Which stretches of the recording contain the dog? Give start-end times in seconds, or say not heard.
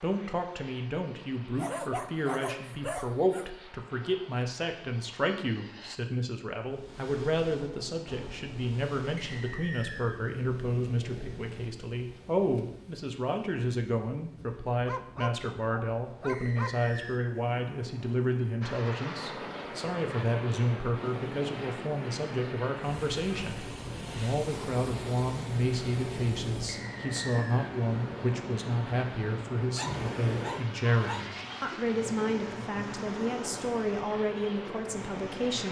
1.6-3.5, 14.8-16.8, 29.8-31.2.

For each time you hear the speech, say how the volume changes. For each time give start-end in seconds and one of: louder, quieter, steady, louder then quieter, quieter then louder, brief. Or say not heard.
0.0-35.6 steady.